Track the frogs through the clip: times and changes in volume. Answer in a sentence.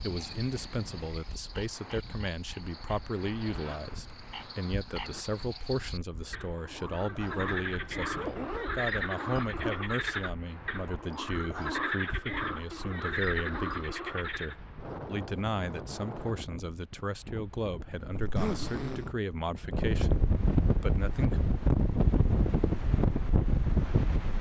The frogs can be heard from 0.0 to 14.6 s, getting louder.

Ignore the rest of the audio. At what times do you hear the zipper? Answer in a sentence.
The zipper can be heard from 3.3 to 5.2 s, from 8.2 to 9.8 s and from 18.1 to 19.1 s.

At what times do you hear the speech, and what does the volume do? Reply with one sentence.
You can hear the speech from 0.0 to 21.4 s, at a steady volume.